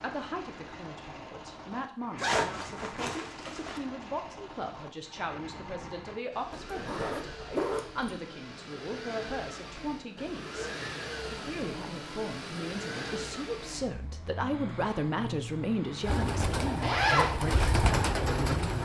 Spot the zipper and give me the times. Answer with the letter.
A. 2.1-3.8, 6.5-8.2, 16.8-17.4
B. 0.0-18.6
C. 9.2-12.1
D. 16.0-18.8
A.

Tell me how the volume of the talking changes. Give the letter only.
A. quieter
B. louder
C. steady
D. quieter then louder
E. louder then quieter
B.